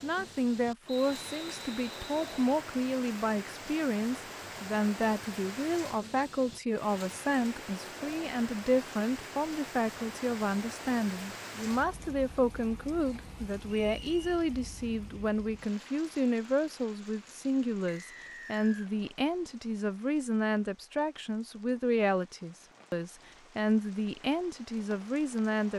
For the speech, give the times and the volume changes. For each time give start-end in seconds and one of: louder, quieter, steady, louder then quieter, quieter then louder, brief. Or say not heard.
0.0-25.7 steady.